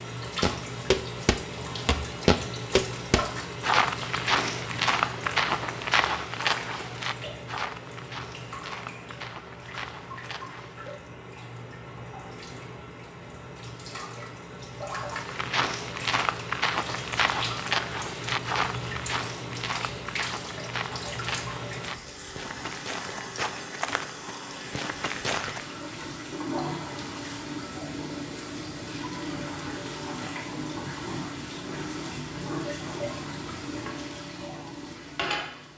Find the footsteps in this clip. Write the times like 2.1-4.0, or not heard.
0.4-10.9, 15.1-25.6.